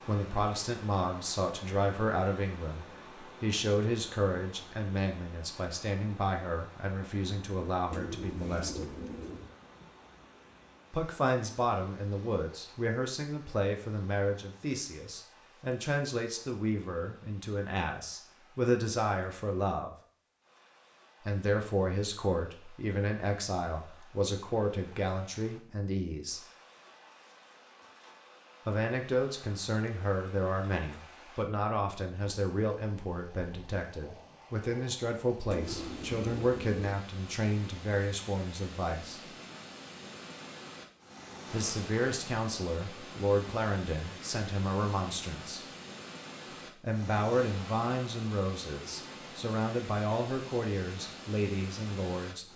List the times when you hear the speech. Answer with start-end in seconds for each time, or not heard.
0.1-8.9, 10.9-19.9, 21.2-26.4, 28.6-39.3, 41.5-45.6, 46.8-52.5.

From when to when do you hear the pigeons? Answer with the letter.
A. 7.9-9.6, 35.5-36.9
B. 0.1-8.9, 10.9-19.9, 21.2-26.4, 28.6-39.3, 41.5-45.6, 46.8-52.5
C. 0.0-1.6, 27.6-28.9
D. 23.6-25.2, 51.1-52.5
A.